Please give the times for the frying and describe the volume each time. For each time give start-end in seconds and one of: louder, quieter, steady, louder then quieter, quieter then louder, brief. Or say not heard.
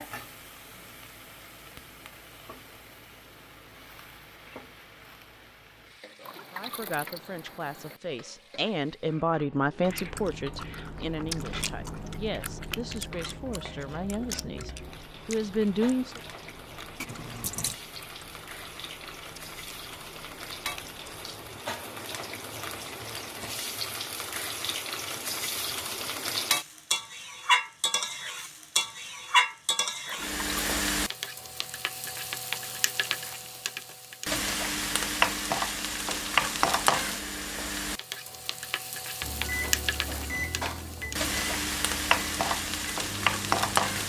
0.0-44.0 louder.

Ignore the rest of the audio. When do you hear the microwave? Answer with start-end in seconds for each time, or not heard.
39.2-44.0.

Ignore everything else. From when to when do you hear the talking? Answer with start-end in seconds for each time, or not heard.
6.5-16.2.